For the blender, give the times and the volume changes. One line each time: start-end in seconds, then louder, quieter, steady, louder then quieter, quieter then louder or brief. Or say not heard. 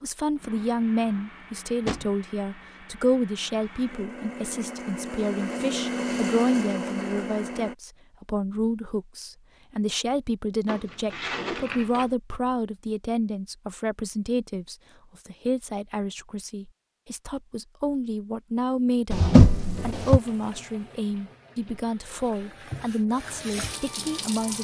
0.3-7.8 louder.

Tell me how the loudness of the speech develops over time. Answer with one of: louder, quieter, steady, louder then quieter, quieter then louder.
steady.